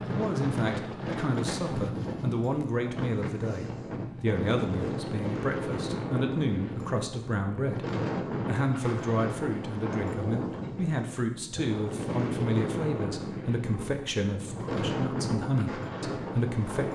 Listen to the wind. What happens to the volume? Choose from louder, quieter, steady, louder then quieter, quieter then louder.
steady.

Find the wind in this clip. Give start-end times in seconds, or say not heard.
0.0-16.9.